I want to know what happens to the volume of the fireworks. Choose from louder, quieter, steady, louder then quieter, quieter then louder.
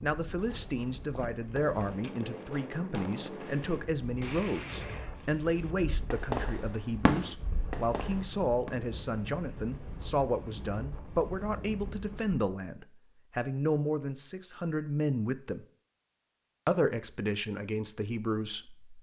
louder then quieter.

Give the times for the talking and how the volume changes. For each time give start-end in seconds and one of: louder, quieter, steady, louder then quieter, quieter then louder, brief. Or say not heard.
0.0-15.7 steady
16.6-18.9 brief.